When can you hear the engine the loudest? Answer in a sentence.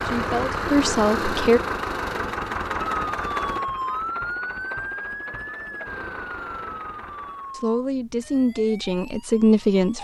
The volume of the engine peaks at 1 second.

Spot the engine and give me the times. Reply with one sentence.
The engine can be heard from 0.0 to 7.6 s.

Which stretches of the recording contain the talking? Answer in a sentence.
You can hear the talking from 0.0 to 1.6 s and from 7.5 to 9.9 s.